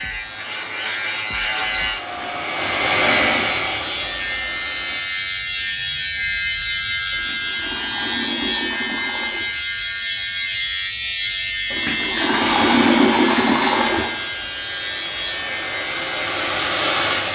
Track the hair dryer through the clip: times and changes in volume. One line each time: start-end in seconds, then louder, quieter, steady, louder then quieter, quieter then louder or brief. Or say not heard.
0.0-5.0 louder then quieter
12.4-17.3 quieter then louder.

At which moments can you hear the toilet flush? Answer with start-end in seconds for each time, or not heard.
2.0-3.5, 7.1-9.5, 11.7-14.2.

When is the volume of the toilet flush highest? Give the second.
13 s.